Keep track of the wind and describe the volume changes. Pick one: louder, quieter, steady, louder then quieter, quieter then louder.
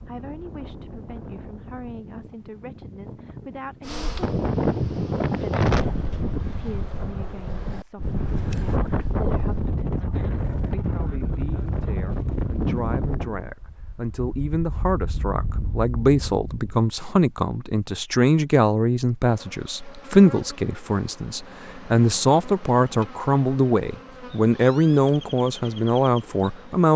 louder then quieter.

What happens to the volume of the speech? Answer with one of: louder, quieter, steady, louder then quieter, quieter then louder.
louder.